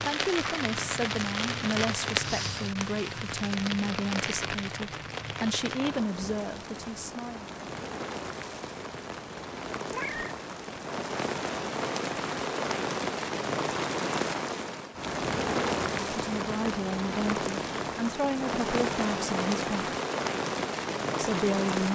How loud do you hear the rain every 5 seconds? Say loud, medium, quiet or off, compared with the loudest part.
loud, medium, loud, loud, loud.